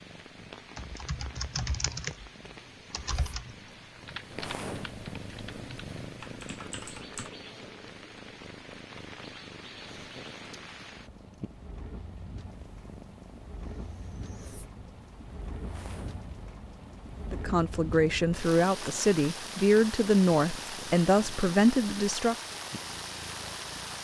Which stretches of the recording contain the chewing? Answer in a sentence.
The chewing can't be heard in this clip.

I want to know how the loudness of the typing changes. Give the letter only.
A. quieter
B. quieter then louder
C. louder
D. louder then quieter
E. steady
B.